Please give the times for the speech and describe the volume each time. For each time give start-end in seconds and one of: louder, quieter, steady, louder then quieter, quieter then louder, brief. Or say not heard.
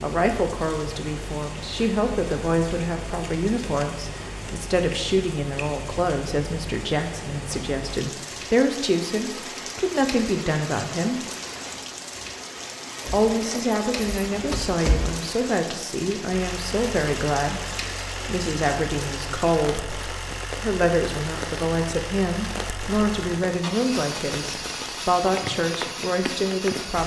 0.0-11.2 steady
13.1-27.0 steady.